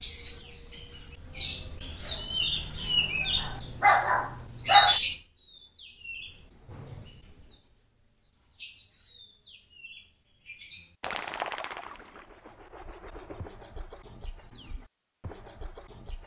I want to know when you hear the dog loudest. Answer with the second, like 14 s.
5 s.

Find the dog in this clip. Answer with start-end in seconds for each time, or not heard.
3.4-5.0.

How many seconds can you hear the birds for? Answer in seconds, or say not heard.
16 s.